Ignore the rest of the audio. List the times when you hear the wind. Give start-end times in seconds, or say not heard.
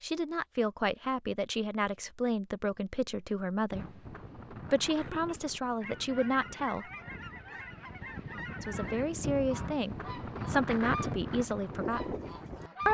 3.7-12.9.